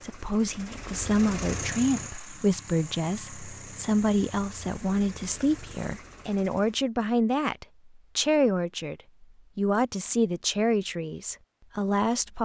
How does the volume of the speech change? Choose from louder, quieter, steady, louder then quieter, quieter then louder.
steady.